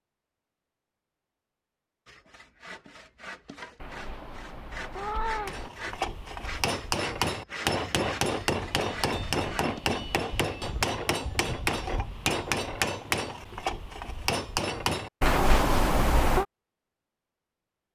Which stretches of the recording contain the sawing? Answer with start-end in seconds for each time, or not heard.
2.0-9.8.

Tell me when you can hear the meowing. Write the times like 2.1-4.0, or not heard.
3.8-5.7, 15.2-16.4.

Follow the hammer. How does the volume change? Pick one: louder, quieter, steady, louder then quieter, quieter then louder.
steady.